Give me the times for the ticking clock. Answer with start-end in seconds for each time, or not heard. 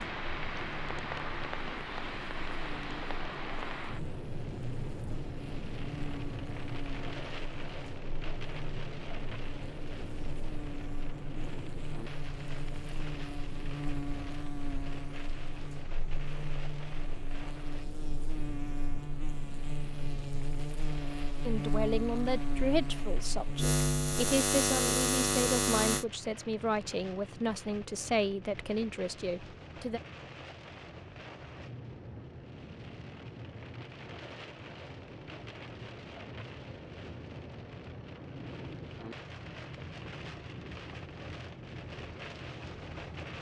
not heard.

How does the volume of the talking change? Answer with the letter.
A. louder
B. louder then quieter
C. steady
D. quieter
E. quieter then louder
C.